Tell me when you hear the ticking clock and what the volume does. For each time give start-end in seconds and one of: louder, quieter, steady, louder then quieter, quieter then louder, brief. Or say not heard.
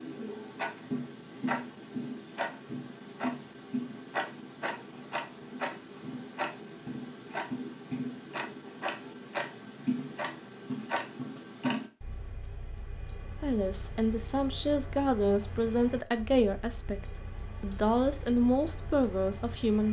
0.0-19.8 quieter.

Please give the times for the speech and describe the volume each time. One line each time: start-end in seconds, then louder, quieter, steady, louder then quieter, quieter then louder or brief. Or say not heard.
13.4-19.8 steady.